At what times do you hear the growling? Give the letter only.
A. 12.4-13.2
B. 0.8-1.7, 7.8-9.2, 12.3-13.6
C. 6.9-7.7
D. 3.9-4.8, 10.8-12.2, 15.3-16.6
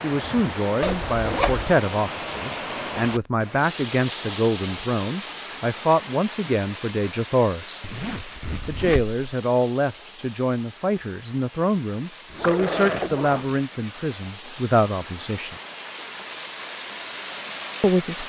A.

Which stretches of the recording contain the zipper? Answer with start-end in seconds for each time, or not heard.
0.8-1.7, 7.8-9.2, 12.3-13.6.